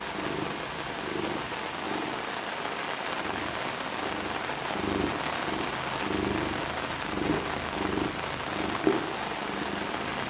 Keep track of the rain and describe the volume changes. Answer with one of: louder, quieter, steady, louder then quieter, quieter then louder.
steady.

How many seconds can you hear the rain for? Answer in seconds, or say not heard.
10 s.